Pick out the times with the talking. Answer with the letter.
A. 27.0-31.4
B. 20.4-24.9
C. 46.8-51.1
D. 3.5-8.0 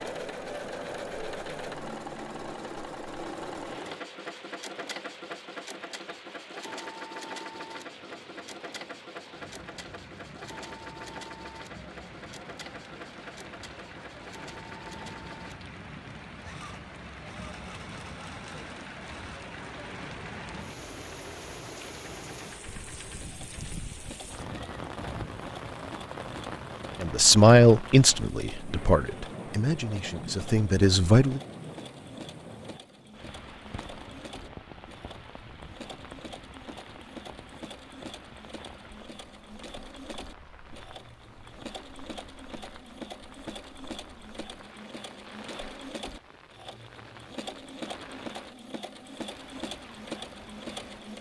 A.